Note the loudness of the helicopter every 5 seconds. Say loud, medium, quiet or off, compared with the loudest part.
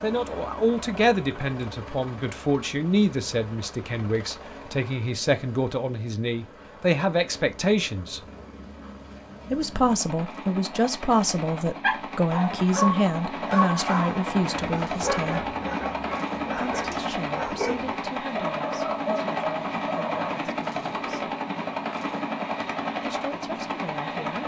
medium, quiet, loud, loud, loud.